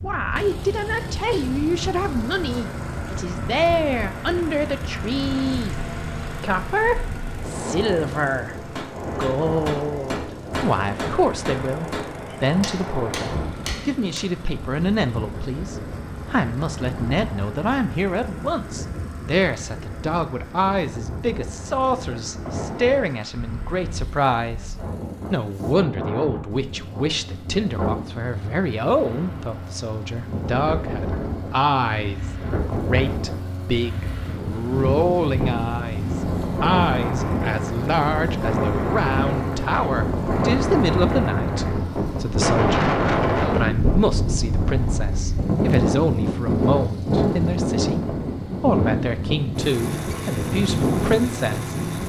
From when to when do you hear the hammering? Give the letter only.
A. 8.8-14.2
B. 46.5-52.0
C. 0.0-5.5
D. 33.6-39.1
A.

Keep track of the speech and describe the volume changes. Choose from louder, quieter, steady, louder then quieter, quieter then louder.
steady.